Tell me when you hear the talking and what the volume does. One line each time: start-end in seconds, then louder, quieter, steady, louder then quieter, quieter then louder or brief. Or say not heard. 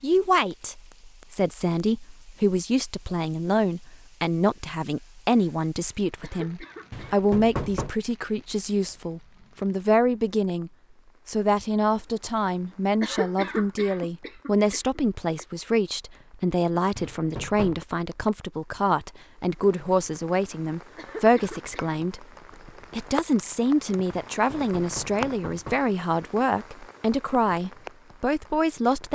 0.0-22.2 steady
22.9-29.1 steady.